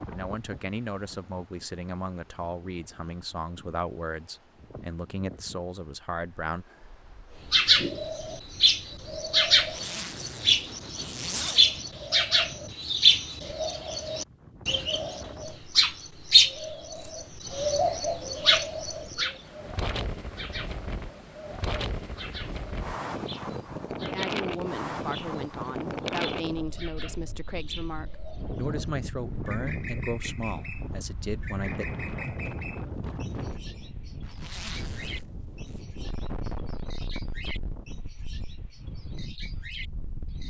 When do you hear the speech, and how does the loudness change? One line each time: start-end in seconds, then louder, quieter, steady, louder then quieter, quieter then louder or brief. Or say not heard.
0.1-6.7 steady
24.1-31.9 steady.